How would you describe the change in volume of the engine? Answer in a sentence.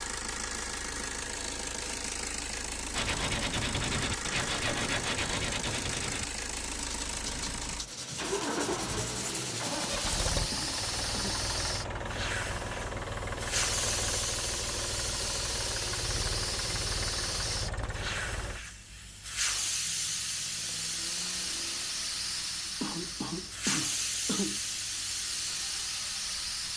The volume of the engine goes down.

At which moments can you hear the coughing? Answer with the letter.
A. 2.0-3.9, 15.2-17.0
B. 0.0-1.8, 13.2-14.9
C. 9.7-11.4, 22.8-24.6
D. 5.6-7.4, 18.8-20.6
C.